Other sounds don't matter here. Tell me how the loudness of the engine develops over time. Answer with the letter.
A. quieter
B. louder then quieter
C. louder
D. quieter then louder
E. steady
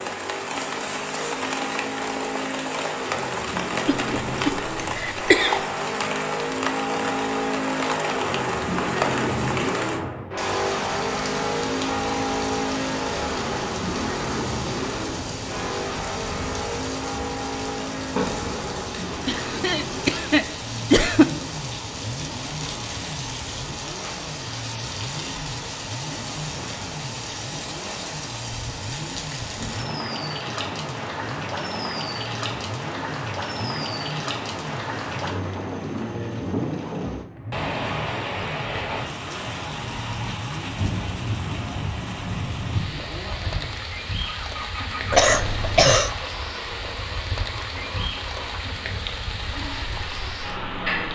A.